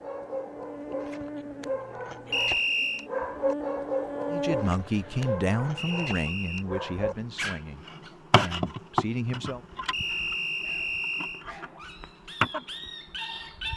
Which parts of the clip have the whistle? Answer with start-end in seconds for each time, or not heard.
2.3-3.0, 5.8-6.7, 9.9-11.4.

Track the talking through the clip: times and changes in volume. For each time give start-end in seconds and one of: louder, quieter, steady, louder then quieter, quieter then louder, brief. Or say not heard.
4.3-9.6 quieter then louder.